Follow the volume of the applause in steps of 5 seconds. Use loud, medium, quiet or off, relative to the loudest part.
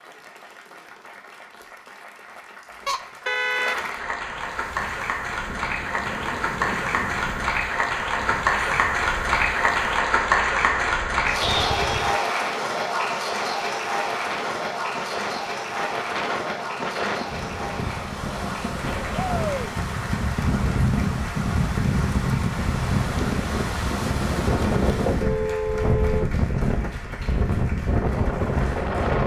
medium, loud, loud, medium, quiet, quiet.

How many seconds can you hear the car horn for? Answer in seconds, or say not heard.
3 s.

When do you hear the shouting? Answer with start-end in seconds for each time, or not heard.
19.1-19.7.